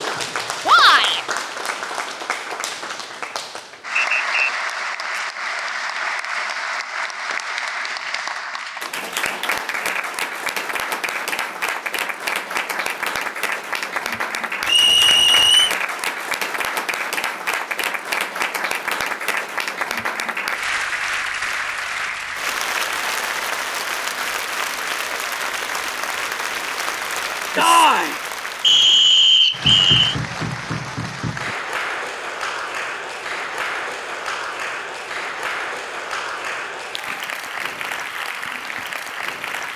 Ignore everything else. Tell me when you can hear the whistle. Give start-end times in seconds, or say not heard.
4.0-4.5, 14.7-15.8, 28.6-30.1.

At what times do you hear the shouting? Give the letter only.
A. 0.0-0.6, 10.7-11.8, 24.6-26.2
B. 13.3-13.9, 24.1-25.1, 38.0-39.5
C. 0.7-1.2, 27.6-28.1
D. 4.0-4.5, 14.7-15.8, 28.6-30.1
C.